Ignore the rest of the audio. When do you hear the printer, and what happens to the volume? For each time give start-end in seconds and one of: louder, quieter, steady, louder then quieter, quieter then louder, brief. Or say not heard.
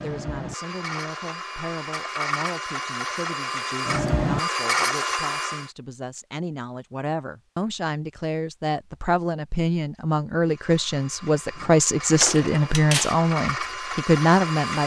0.0-5.7 louder
10.4-14.8 louder.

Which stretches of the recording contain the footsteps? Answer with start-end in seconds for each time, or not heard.
not heard.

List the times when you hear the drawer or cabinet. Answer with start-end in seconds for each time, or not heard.
12.2-13.2.